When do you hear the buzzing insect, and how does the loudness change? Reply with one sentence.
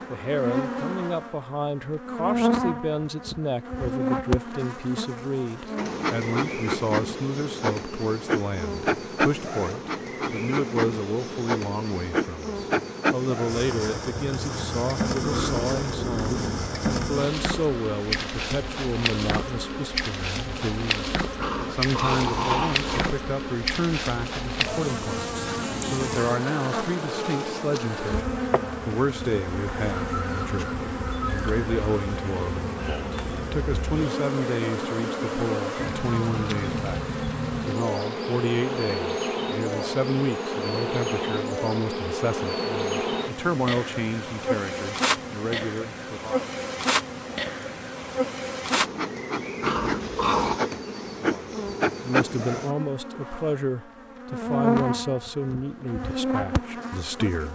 The buzzing insect can be heard from 0.0 to 57.5 s, at a steady volume.